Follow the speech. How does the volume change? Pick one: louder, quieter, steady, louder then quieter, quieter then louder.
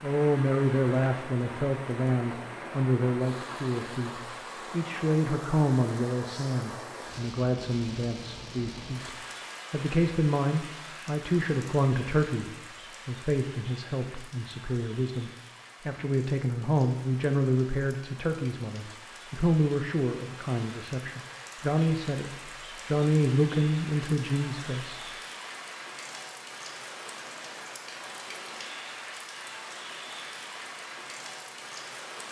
steady.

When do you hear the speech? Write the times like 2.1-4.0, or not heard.
0.0-25.0.